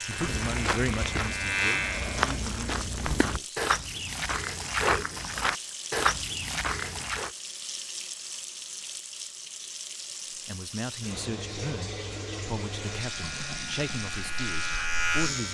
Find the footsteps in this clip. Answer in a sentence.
The footsteps can be heard from 0.1 to 7.3 s.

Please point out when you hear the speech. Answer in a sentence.
You can hear the speech from 0.1 to 3.6 s and from 10.4 to 15.4 s.